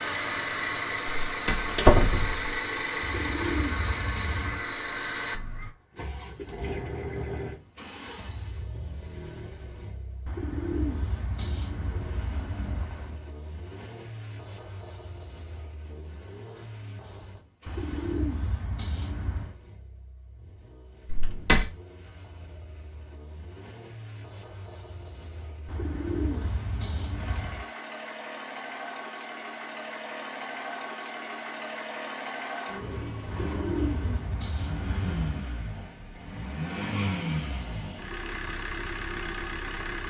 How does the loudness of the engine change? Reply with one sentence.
The volume of the engine goes down, then up.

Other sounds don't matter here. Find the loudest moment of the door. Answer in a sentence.
The volume of the door peaks at 2 seconds.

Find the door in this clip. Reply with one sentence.
The door can be heard from 1.2 to 2.5 s and from 21.1 to 21.7 s.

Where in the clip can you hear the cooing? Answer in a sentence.
The cooing can be heard from 3.0 to 4.7 s, from 10.2 to 13.2 s, from 17.6 to 19.6 s, from 25.6 to 27.6 s and from 33.2 to 35.4 s.